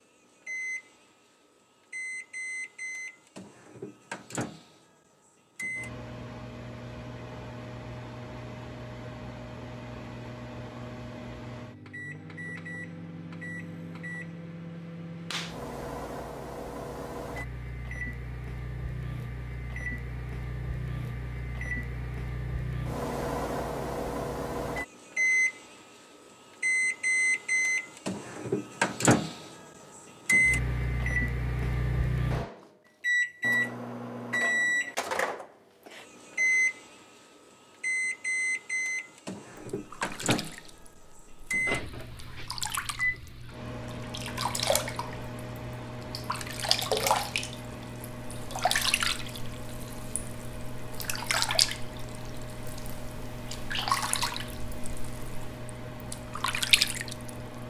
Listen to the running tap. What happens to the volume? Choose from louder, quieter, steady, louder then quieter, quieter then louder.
louder.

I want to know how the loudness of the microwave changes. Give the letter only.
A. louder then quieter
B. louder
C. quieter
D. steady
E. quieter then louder
A.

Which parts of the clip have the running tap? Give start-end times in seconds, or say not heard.
39.8-57.4.